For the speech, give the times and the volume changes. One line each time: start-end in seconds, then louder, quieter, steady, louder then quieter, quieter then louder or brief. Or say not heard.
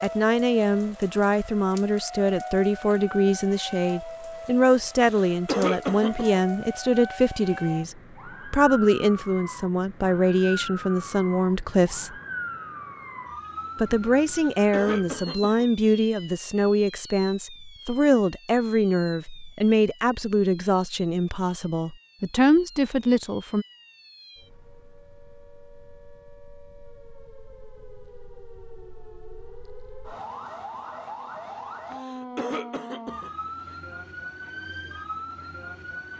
0.0-12.2 steady
13.8-23.6 steady.